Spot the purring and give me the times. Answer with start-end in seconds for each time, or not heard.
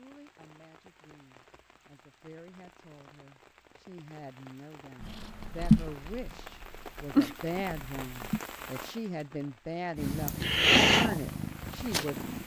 5.0-8.4, 9.9-12.4.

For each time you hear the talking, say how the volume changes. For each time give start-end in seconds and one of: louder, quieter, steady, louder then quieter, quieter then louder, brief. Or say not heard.
0.0-12.2 louder.